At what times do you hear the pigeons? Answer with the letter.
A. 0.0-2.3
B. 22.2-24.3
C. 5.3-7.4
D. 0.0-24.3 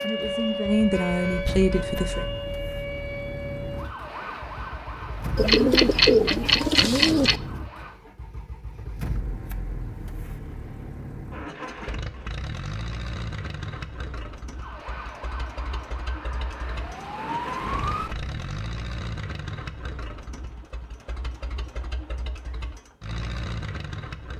C.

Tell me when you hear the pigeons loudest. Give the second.
6 s.